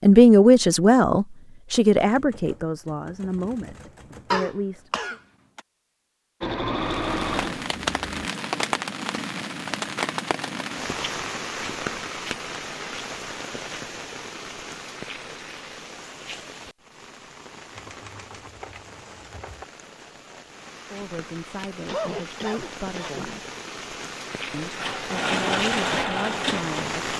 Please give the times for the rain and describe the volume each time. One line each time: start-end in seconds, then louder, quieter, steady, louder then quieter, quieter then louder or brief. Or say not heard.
6.8-27.1 quieter then louder.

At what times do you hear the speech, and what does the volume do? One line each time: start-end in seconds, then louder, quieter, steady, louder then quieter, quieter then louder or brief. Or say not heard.
0.0-5.2 quieter
20.9-23.4 brief
24.5-27.1 brief.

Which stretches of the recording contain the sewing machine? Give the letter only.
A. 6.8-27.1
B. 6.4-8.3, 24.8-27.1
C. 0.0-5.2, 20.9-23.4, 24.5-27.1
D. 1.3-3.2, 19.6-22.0
B.